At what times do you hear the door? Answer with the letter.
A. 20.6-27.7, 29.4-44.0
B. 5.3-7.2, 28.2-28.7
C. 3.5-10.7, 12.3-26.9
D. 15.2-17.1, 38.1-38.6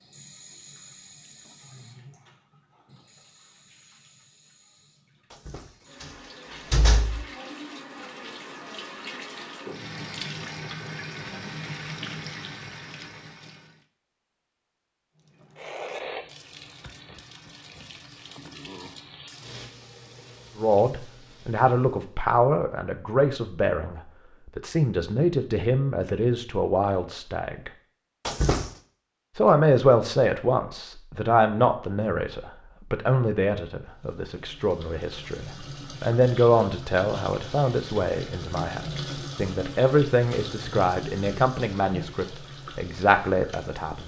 B.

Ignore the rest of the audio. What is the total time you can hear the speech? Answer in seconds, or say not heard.
22 s.